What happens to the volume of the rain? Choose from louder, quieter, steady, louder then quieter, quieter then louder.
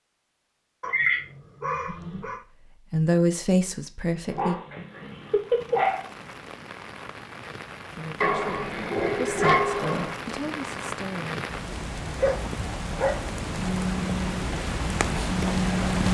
louder.